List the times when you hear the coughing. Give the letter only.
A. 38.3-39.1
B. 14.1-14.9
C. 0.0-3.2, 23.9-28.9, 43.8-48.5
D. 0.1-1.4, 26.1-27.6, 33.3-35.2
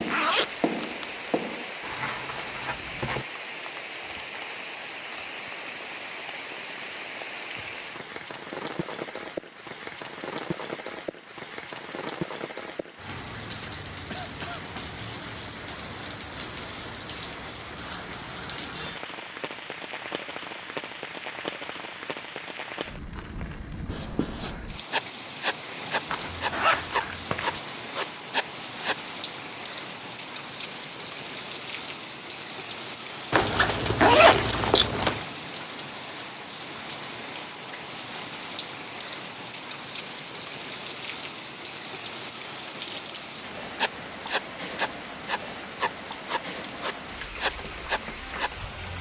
B.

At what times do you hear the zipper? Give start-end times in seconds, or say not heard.
0.1-1.4, 26.1-27.6, 33.3-35.2.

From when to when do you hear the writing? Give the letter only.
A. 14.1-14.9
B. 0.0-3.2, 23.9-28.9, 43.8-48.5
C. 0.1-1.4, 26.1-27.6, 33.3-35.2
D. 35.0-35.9
B.